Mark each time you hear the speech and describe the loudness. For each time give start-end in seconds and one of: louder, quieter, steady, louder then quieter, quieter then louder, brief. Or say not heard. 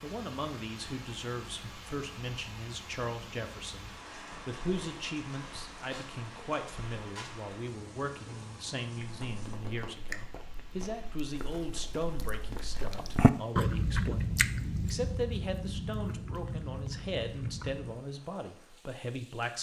0.0-19.5 steady.